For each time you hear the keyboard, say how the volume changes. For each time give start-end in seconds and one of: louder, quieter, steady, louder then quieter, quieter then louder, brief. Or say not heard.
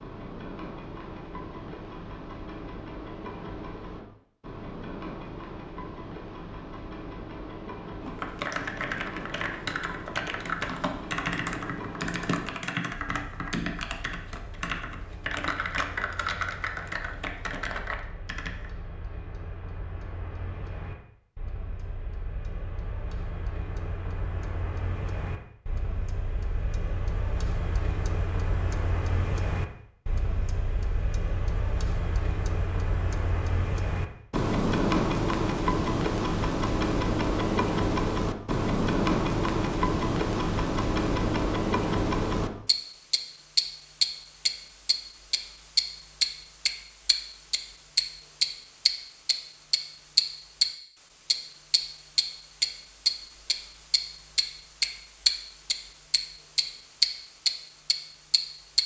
8.0-18.7 steady.